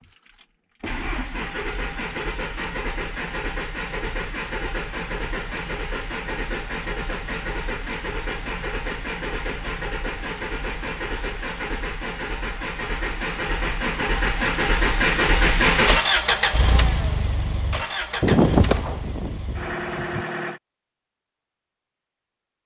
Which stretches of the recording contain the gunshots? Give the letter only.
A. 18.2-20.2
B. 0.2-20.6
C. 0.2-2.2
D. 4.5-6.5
A.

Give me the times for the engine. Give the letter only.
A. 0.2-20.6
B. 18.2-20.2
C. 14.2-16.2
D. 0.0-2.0
A.